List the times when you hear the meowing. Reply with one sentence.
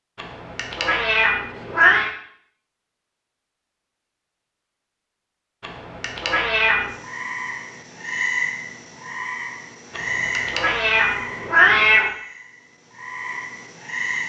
The meowing can be heard from 0.1 to 2.1 s, from 5.6 to 6.9 s and from 9.9 to 12.1 s.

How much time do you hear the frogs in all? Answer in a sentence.
You can hear the frogs for 7 seconds altogether.